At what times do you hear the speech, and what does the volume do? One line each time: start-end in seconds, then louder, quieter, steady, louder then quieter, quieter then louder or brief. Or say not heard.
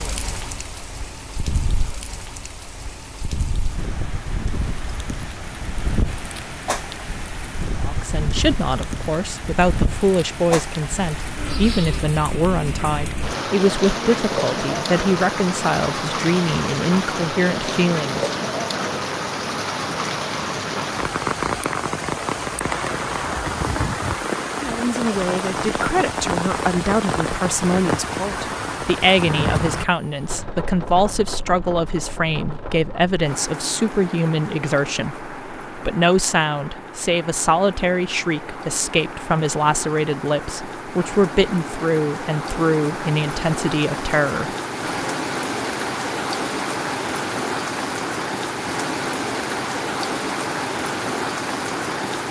7.8-18.2 steady
24.6-45.1 steady.